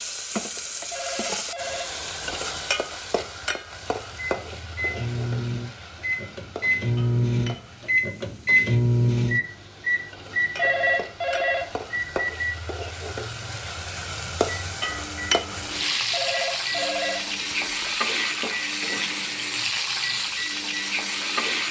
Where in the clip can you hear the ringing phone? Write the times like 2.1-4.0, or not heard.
0.9-1.9, 10.6-12.3, 16.1-17.9.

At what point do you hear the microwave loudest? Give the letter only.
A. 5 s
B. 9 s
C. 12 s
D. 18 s
B.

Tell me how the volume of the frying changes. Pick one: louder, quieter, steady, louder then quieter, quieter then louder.
quieter then louder.